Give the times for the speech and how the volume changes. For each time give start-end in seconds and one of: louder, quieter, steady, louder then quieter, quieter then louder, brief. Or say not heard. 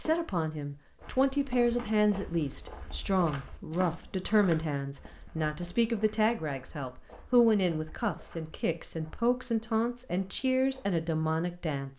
0.0-11.9 steady.